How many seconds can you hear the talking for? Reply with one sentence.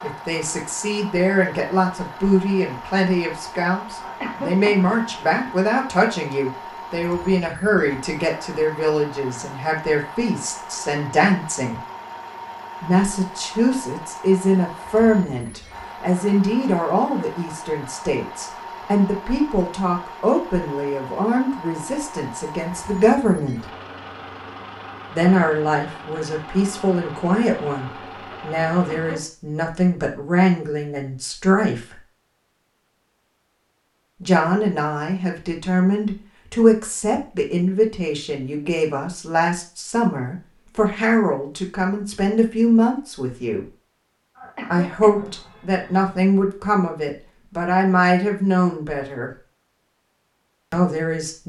The talking can be heard for 44 seconds in total.